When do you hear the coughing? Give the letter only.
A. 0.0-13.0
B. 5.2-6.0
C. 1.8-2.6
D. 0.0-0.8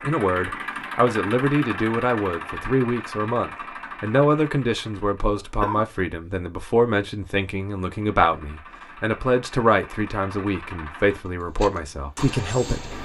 B.